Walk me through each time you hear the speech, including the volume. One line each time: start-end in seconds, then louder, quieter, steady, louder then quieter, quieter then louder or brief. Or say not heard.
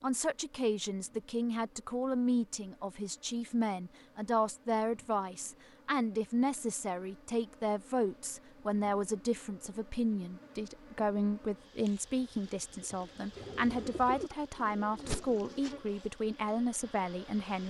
0.0-17.6 steady.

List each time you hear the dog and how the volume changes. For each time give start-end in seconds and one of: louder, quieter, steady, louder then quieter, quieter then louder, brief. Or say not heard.
not heard.